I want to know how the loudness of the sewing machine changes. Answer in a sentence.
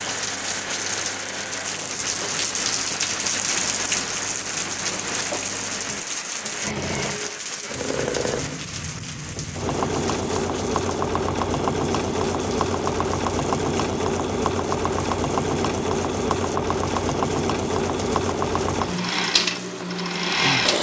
The loudness of the sewing machine goes up.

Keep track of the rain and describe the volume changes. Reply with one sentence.
The volume of the rain goes down.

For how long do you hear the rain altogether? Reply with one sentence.
You can hear the rain for 21 seconds altogether.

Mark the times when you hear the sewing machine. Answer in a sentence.
You can hear the sewing machine from 0.0 to 20.7 s.